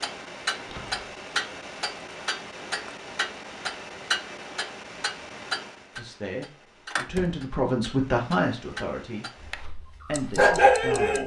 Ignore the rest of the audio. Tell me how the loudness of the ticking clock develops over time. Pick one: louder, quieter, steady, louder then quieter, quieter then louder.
quieter.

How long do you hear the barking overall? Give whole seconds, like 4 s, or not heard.
2 s.